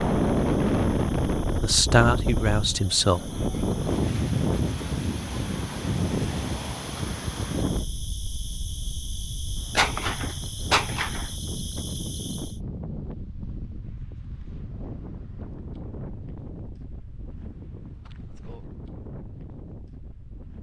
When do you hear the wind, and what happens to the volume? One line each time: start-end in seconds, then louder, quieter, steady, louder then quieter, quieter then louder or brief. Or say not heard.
0.0-20.5 quieter.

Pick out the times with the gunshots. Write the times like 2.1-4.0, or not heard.
9.8-11.3.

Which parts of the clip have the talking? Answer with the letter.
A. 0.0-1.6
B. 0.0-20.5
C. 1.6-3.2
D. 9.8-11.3
C.